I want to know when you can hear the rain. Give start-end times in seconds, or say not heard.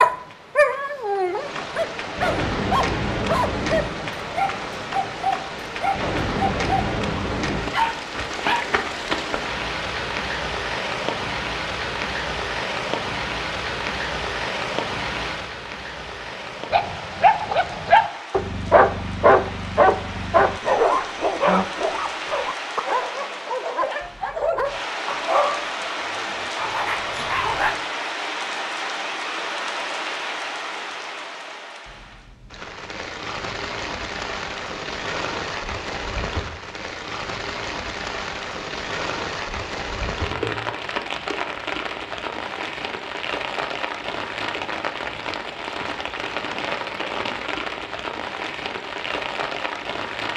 0.0-50.3.